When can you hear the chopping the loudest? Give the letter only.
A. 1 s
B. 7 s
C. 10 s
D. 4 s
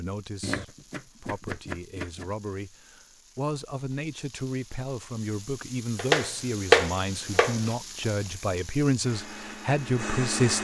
B.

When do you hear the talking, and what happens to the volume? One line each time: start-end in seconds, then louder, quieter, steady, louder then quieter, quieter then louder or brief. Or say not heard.
0.0-10.5 louder.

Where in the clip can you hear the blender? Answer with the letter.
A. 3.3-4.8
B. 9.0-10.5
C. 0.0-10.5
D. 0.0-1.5
B.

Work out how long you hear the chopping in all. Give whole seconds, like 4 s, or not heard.
4 s.